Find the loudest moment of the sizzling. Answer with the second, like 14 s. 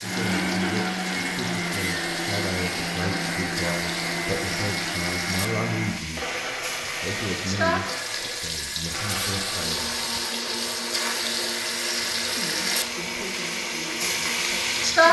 15 s.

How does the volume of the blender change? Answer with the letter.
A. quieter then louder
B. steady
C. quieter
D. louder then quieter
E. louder
C.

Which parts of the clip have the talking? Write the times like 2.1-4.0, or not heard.
0.0-9.8, 12.3-15.0.